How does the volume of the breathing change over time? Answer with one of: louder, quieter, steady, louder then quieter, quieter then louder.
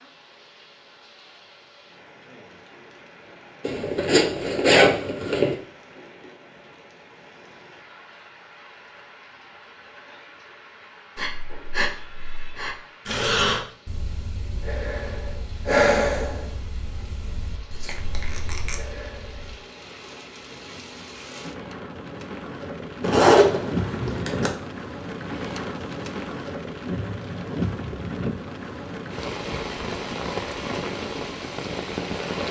louder then quieter.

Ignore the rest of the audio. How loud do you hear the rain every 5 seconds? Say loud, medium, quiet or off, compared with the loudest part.
quiet, quiet, quiet, quiet, loud, loud, loud.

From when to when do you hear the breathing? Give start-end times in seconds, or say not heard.
11.2-19.6.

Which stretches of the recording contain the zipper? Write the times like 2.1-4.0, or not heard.
3.6-5.5, 23.0-24.5.